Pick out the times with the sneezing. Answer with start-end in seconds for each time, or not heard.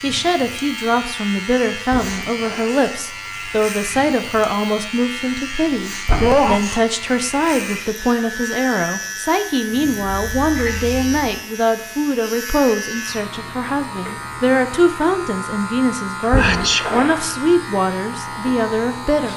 6.2-6.9, 16.4-16.9.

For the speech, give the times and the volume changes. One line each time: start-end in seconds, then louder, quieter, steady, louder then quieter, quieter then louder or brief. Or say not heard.
0.0-19.3 steady.